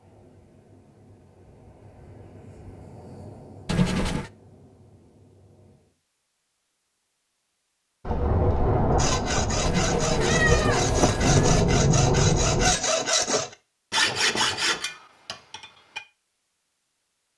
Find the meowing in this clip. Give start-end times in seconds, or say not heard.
3.6-4.3, 9.7-11.6.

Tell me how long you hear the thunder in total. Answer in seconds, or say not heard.
5 s.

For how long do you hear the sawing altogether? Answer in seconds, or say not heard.
7 s.